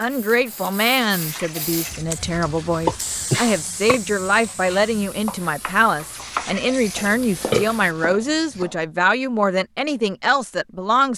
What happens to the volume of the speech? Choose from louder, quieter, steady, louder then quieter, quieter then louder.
steady.